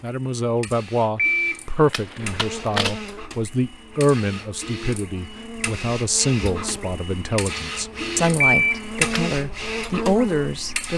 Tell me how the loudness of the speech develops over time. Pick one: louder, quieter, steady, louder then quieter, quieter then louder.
steady.